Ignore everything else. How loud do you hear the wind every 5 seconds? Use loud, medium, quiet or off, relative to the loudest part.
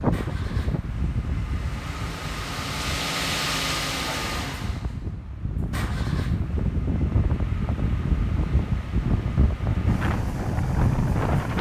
medium, loud, loud.